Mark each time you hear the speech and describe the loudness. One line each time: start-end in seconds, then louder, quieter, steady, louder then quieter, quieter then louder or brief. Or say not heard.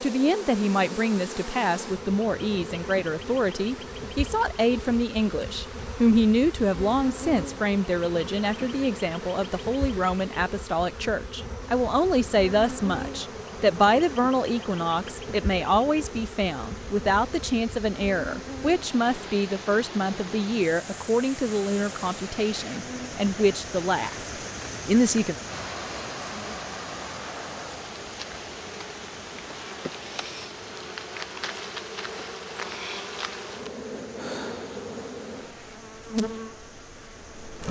0.0-25.4 steady.